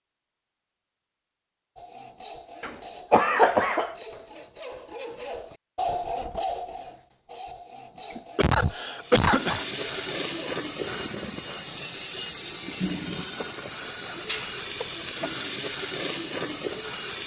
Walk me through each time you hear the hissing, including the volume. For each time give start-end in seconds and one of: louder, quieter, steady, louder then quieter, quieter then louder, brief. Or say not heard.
8.9-17.2 steady.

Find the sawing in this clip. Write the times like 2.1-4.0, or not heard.
1.8-10.7.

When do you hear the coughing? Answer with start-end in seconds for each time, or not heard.
2.6-4.0, 8.1-9.7, 14.2-15.3.